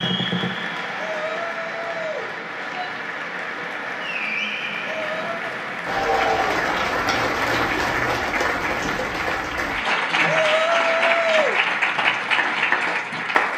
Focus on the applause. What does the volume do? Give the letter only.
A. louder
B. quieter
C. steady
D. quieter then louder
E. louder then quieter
A.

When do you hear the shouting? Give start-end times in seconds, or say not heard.
0.9-3.0, 4.8-5.5, 10.2-11.6.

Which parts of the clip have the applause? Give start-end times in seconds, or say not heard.
0.0-13.5.